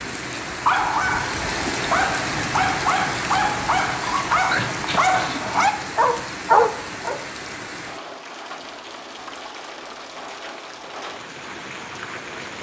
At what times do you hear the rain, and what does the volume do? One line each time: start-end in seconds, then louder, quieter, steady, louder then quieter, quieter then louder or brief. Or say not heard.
0.0-12.5 quieter.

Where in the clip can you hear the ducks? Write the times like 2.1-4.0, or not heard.
not heard.